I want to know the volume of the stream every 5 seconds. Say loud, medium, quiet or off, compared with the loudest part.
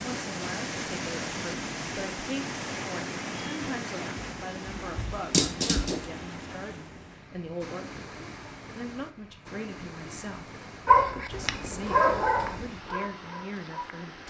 loud, medium, medium.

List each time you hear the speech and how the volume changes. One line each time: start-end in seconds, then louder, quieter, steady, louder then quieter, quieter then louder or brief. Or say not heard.
0.0-14.2 steady.